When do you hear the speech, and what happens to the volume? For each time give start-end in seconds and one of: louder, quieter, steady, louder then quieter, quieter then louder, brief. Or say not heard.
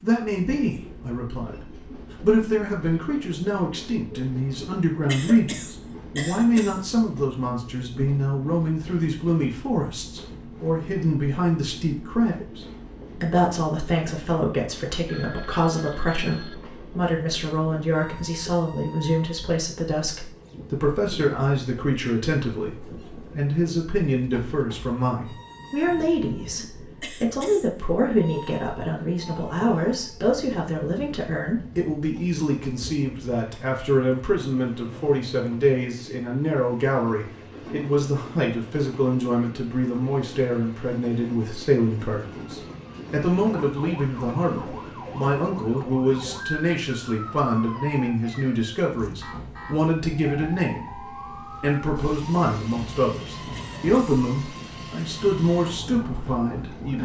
0.0-57.0 steady.